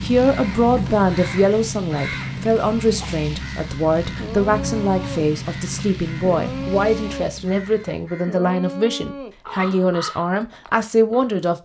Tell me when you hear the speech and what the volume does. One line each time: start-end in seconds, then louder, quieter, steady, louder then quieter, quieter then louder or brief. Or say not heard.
0.0-11.6 steady.